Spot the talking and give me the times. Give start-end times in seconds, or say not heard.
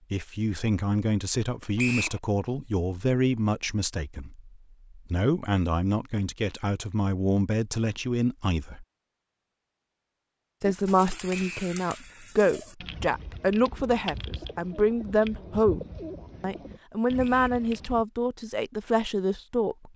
0.1-8.8, 10.6-19.9.